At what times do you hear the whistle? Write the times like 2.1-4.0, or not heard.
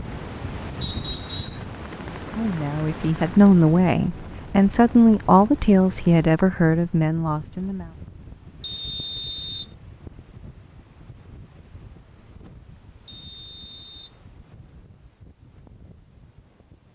0.8-1.6, 8.6-9.7, 13.1-14.2.